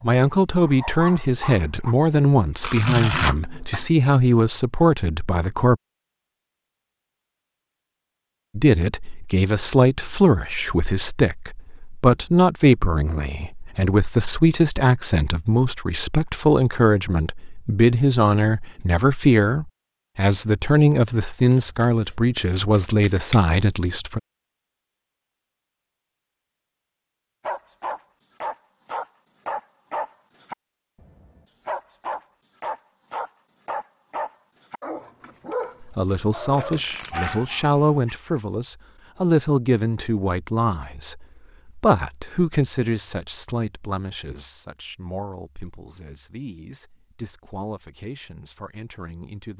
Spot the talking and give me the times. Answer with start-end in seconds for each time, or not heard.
0.0-5.8, 8.6-24.2, 35.8-49.5.